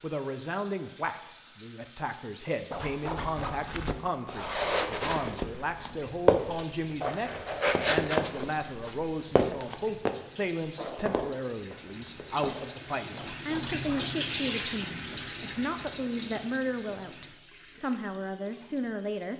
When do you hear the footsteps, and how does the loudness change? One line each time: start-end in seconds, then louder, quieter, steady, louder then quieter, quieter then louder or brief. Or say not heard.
3.4-12.8 quieter.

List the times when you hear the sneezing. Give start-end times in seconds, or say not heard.
not heard.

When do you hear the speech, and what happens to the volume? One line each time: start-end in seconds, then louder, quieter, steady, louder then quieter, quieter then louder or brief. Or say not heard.
0.0-19.3 steady.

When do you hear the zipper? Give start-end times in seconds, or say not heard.
2.7-3.6, 13.2-14.1.